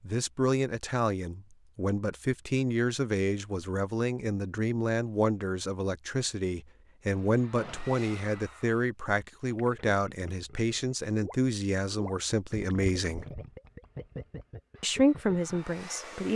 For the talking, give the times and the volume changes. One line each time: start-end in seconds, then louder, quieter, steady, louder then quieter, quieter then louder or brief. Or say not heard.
0.0-13.2 steady
14.8-16.3 brief.